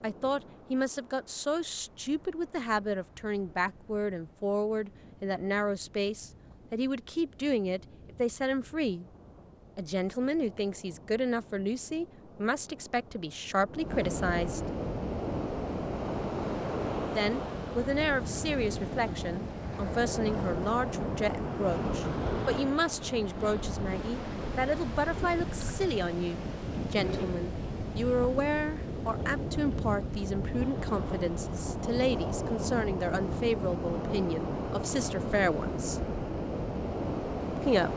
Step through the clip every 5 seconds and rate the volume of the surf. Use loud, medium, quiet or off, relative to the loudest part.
quiet, quiet, medium, loud, loud, loud, loud, loud.